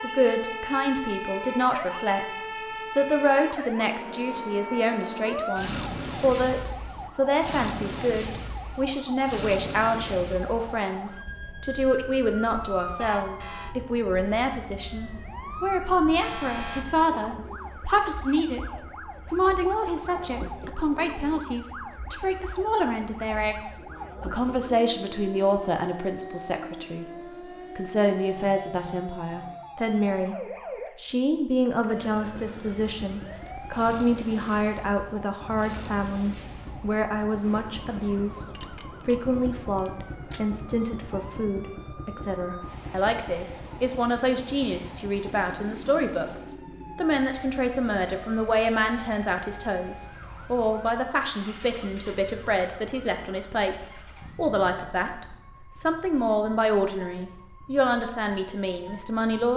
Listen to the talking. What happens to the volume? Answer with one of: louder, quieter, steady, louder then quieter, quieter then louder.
steady.